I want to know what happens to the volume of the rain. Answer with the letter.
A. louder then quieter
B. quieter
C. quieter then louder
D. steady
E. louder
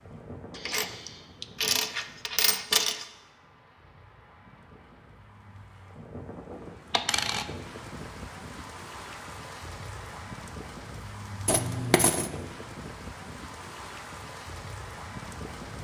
E.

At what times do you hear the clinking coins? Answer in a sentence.
You can hear the clinking coins from 0.6 to 3.0 s, from 6.9 to 7.5 s and from 11.4 to 12.3 s.